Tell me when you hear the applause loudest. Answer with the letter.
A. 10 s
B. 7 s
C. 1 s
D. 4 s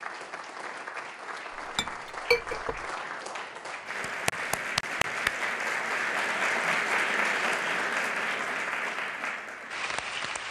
B.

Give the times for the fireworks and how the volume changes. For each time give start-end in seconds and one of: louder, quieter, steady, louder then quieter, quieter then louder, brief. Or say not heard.
not heard.